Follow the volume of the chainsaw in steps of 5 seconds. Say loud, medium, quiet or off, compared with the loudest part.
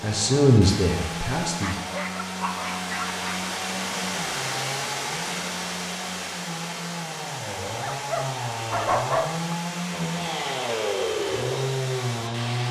medium, medium, loud.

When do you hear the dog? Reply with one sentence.
You can hear the dog from 1.6 to 3.4 s and from 7.7 to 9.6 s.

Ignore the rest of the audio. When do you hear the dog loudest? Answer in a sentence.
The loudest moment of the dog is at 9 seconds.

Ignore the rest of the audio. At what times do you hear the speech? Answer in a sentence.
The speech can be heard from 0.0 to 1.8 s.